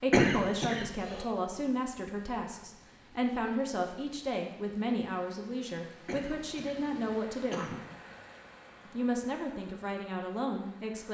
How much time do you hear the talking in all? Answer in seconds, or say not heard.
10 s.